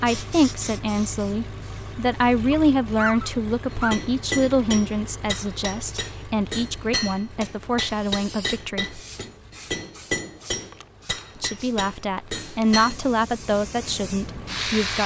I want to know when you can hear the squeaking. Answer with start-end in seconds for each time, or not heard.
2.5-4.0.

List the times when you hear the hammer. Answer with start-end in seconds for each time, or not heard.
3.7-12.9.